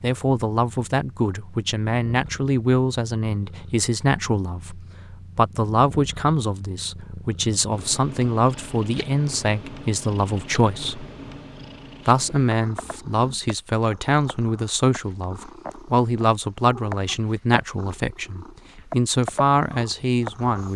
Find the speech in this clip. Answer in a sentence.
You can hear the speech from 0.0 to 11.1 s and from 12.1 to 20.7 s.